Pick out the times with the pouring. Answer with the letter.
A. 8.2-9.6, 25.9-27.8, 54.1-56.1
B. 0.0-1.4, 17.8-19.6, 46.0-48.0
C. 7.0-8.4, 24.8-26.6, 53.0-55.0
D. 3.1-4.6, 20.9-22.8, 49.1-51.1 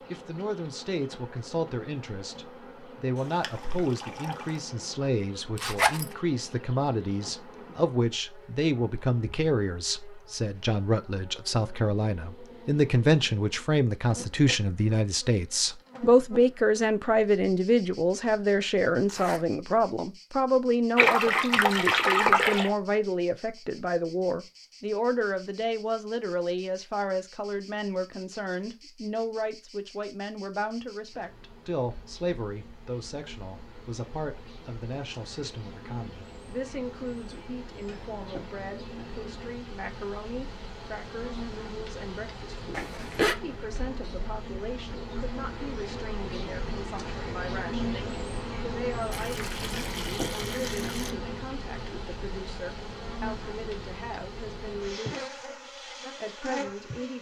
D.